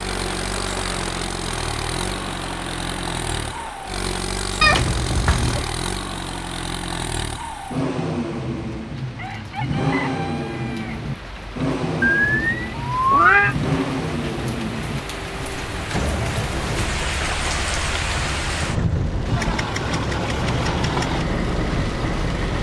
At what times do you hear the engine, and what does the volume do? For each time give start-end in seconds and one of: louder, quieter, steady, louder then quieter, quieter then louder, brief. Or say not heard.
0.0-22.5 steady.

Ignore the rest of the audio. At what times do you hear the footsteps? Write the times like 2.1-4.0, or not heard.
not heard.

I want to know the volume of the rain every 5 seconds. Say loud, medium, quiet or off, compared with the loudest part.
medium, quiet, medium, loud, loud.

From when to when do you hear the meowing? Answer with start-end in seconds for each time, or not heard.
4.6-5.7, 12.0-13.6.